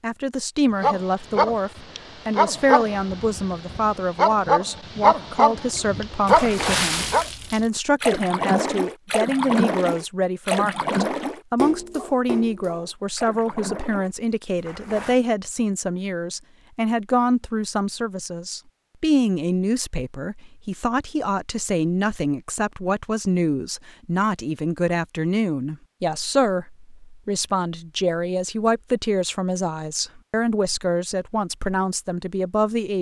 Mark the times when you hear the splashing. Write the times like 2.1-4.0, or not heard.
5.8-15.2.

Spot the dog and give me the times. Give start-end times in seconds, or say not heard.
0.8-7.2.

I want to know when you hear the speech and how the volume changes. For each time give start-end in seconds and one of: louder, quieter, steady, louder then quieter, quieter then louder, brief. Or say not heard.
0.0-32.9 steady.